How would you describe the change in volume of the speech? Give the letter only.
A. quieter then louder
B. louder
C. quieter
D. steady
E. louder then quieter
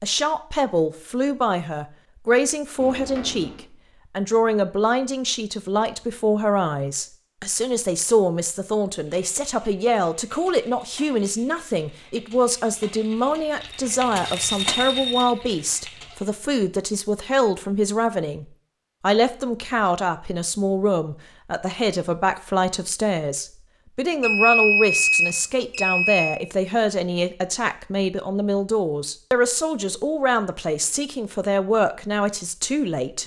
D.